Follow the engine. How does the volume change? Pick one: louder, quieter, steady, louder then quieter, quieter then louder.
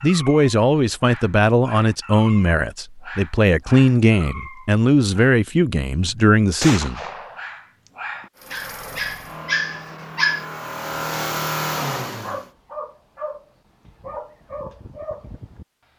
louder.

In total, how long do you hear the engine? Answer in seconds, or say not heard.
4 s.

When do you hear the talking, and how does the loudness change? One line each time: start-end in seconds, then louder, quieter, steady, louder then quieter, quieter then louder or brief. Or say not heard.
0.0-7.0 steady.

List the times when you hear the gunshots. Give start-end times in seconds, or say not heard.
6.6-7.5.